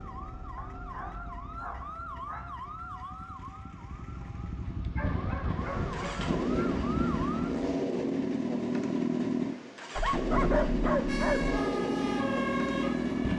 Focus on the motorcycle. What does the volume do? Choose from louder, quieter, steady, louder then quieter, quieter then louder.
louder.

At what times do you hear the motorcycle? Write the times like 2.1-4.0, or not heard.
0.2-13.3.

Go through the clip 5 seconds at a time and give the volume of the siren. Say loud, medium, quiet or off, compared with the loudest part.
medium, medium, loud.